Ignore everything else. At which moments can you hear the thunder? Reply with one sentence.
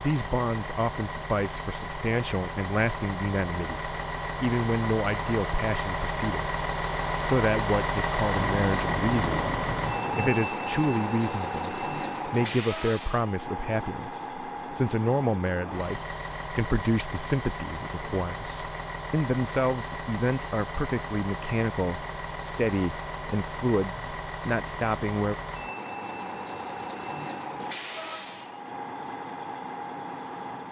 The thunder can be heard from 8.3 to 10.3 s.